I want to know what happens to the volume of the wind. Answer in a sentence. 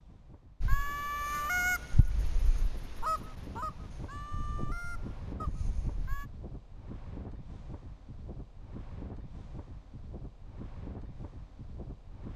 The volume of the wind goes up.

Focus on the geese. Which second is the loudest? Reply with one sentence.
The loudest moment of the geese is at 2 seconds.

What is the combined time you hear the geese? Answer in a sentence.
The geese can be heard for 6 seconds in total.